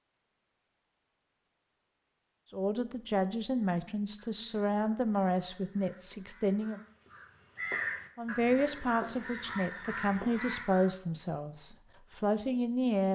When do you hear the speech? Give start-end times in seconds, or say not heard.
2.5-6.8, 8.2-13.1.